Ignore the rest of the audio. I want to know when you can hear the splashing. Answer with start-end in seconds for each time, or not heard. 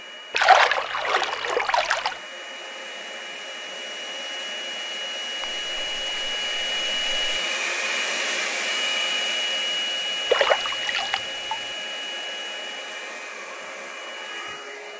0.3-2.2, 5.4-7.4, 10.2-11.7.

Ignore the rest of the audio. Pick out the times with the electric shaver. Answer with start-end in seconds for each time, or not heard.
not heard.